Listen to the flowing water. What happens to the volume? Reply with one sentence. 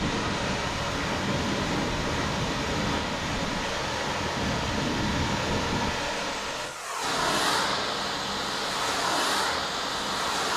The loudness of the flowing water stays about the same.